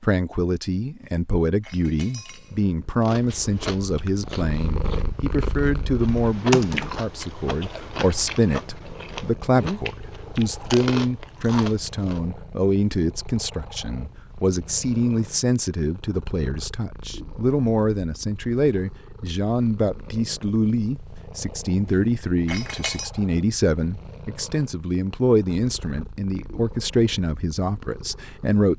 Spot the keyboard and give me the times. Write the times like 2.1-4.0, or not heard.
6.0-7.0.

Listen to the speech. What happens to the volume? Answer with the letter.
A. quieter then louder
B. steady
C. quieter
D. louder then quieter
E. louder
B.